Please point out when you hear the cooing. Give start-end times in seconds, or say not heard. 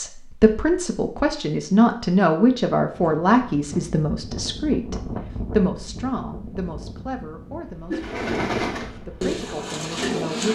7.9-10.5.